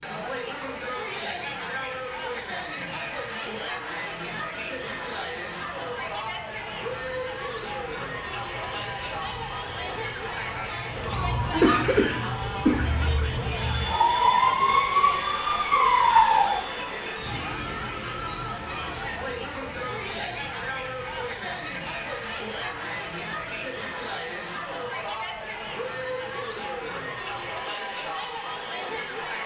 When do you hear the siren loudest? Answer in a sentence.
The loudest moment of the siren is at 16 seconds.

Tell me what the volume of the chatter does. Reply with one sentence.
The volume of the chatter stays about the same.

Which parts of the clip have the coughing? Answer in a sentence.
You can hear the coughing from 11.5 to 12.9 s.